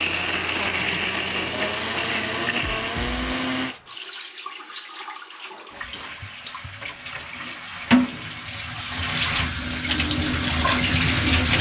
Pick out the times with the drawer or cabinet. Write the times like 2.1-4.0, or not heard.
not heard.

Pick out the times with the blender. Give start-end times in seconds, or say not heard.
0.0-3.8.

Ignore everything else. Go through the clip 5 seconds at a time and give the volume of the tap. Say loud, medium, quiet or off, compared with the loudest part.
quiet, medium, loud.